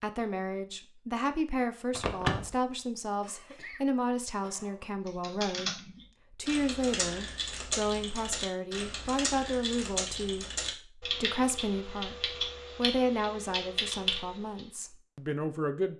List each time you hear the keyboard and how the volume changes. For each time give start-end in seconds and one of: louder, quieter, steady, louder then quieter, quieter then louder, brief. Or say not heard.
5.0-14.6 steady.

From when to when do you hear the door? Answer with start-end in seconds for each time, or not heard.
1.9-2.5.